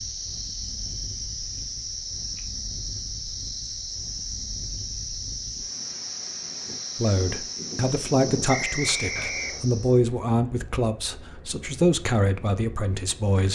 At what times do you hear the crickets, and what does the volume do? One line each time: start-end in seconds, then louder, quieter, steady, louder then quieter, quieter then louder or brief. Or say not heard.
0.0-10.0 steady.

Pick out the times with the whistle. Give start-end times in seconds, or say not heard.
8.4-9.7.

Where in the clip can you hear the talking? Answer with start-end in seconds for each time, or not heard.
7.0-13.4.